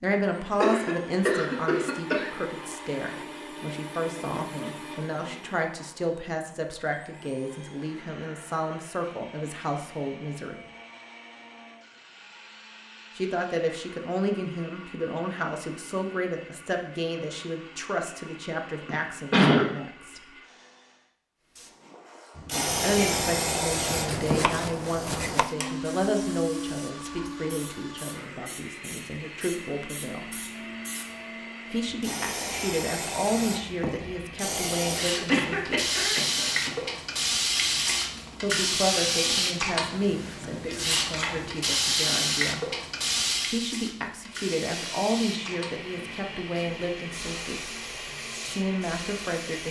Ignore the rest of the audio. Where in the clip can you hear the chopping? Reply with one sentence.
The chopping can be heard from 22.6 to 25.6 s.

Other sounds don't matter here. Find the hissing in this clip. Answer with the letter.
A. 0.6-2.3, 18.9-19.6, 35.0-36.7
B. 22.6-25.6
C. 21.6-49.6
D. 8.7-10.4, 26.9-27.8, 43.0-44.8
C.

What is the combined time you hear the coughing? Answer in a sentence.
The coughing can be heard for 4 seconds in total.